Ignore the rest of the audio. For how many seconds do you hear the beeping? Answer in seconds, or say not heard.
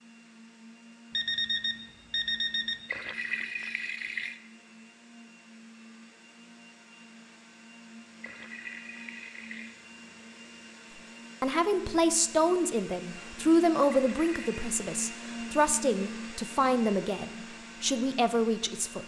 2 s.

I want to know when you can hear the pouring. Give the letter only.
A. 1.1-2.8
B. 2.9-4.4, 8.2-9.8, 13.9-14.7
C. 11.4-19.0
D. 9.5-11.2
B.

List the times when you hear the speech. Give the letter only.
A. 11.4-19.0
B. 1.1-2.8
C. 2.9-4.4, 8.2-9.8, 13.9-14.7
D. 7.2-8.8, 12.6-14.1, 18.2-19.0
A.